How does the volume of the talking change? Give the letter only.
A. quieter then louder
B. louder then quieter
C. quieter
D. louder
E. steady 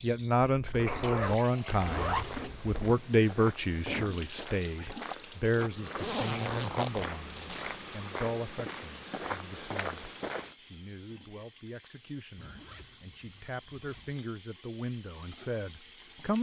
A.